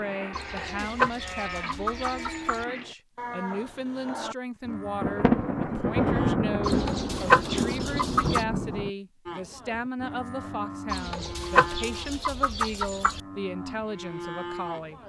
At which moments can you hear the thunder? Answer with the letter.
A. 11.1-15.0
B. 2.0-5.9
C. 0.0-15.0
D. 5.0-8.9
D.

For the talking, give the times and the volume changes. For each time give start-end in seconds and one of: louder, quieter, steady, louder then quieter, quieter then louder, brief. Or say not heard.
0.0-15.0 steady.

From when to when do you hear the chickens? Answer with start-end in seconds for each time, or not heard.
0.3-2.6, 6.7-8.4, 10.9-13.2.